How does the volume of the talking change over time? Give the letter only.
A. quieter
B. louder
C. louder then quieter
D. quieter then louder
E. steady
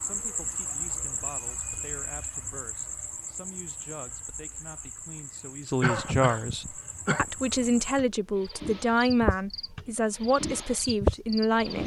B.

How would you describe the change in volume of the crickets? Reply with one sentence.
The volume of the crickets goes down, then up.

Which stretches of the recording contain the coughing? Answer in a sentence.
You can hear the coughing from 5.8 to 7.2 s.